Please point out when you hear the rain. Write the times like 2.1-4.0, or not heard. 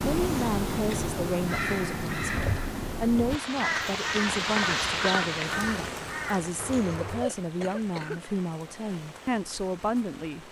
3.2-10.4.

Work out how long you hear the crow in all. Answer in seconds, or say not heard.
7 s.